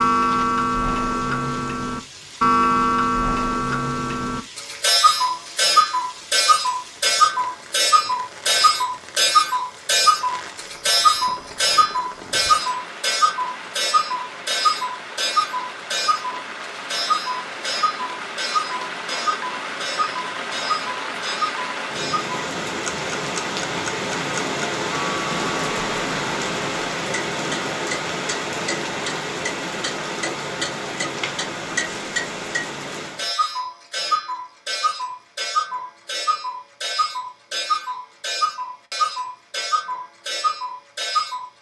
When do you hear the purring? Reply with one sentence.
You can't hear the purring here.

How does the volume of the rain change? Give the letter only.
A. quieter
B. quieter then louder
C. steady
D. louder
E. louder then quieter
D.